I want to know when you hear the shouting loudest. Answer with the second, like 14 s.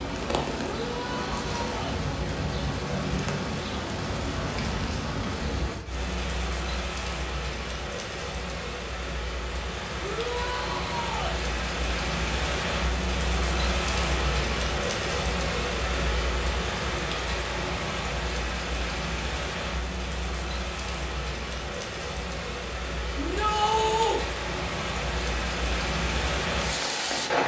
24 s.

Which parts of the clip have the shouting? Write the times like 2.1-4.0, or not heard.
0.6-2.0, 10.0-11.4, 23.1-24.2.